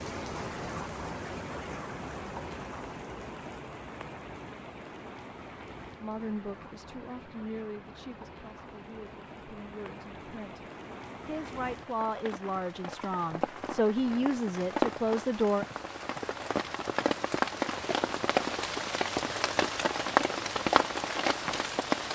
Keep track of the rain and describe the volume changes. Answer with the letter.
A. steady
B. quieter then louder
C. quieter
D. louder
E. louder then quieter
B.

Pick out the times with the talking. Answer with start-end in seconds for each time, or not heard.
6.0-15.7.